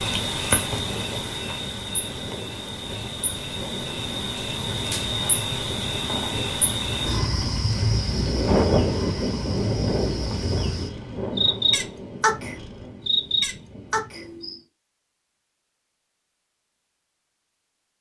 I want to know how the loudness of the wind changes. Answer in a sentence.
The loudness of the wind goes up, then down.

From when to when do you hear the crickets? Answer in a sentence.
You can hear the crickets from 0.0 to 14.6 s.